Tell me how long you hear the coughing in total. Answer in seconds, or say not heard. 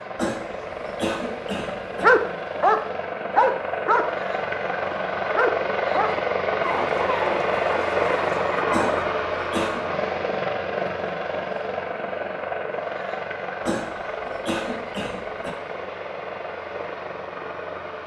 5 s.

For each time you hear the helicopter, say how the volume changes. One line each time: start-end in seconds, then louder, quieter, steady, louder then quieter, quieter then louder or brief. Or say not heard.
0.0-18.0 louder then quieter.